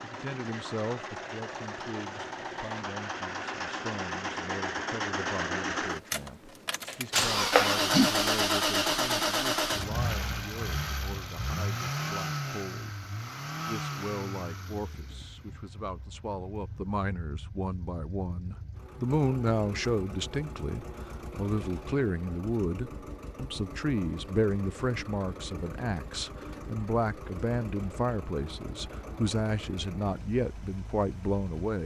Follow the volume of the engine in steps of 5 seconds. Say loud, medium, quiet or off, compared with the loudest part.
medium, loud, medium, quiet, quiet, quiet, quiet.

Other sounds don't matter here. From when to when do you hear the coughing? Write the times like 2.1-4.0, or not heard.
7.5-8.1.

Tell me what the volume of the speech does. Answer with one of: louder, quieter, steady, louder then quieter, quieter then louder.
louder.